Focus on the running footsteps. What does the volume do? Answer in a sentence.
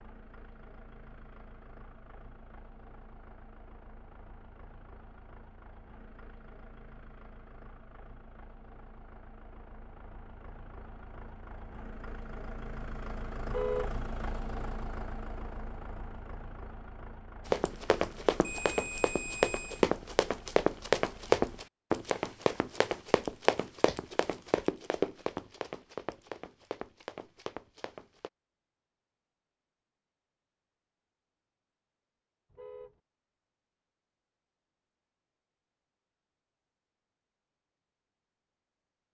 The volume of the running footsteps goes down.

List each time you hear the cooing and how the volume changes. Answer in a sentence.
The cooing can't be heard in this clip.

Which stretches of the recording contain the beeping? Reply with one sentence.
The beeping can be heard from 18.4 to 19.9 s.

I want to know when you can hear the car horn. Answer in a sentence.
The car horn can be heard from 13.4 to 13.9 s and from 32.5 to 33.0 s.